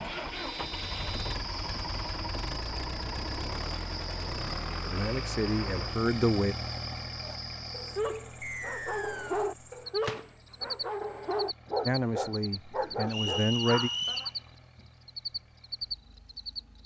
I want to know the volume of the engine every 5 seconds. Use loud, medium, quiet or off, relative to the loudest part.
loud, loud, quiet, quiet.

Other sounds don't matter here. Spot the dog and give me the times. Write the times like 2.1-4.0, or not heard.
7.2-14.3.